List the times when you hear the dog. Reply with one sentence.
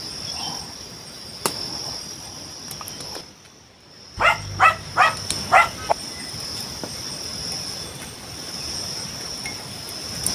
You can hear the dog from 4.2 to 6.0 s.